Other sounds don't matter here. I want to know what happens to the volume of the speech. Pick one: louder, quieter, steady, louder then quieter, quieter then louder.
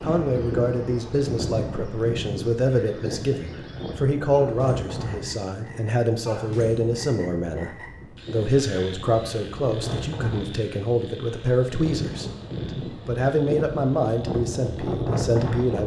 steady.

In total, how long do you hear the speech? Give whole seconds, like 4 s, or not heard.
16 s.